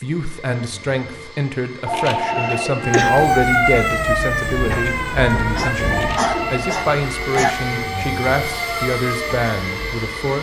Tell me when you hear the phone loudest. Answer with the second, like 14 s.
2 s.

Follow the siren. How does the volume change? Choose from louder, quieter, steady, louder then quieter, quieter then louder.
quieter.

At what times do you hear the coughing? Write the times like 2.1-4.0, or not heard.
2.3-3.1, 5.5-7.5.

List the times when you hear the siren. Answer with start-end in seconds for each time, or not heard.
2.8-10.3.